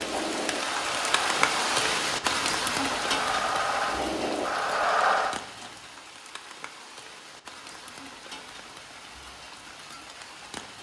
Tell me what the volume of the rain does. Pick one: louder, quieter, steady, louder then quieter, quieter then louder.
quieter.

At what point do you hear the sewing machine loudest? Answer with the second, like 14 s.
5 s.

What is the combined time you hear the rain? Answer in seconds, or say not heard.
11 s.